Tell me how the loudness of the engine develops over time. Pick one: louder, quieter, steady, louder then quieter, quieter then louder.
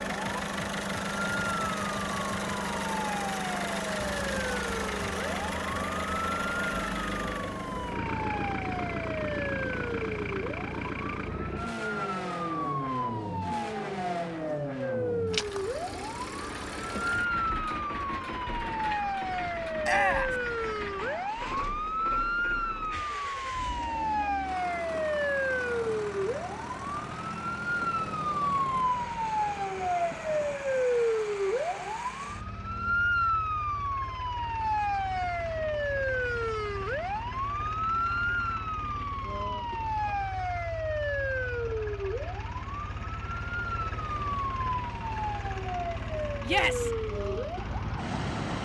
quieter.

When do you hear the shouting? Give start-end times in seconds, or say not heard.
19.8-20.4, 46.4-46.9.